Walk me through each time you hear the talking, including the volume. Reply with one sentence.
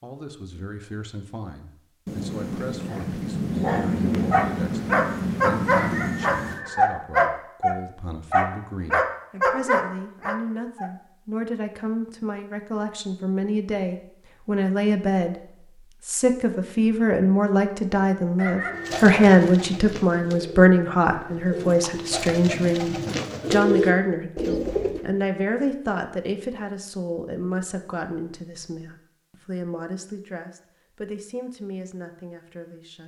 The talking can be heard from 0.0 to 33.0 s, getting louder then quieter.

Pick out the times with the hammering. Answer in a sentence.
You can't hear the hammering here.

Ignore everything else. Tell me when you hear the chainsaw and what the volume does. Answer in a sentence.
You can't hear the chainsaw here.